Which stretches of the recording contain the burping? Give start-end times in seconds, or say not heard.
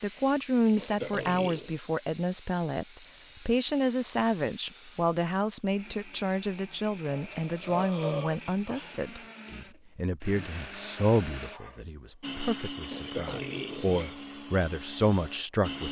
0.7-1.8, 7.0-9.0, 12.8-14.2.